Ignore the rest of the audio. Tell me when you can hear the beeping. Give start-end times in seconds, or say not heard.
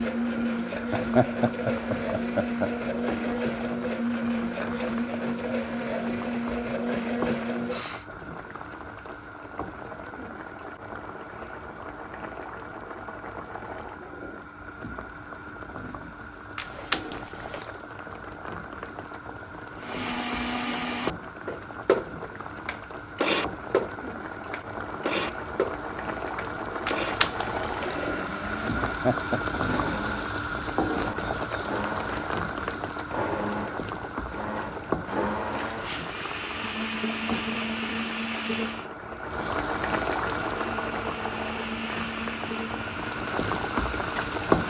16.6-17.8, 26.9-28.1.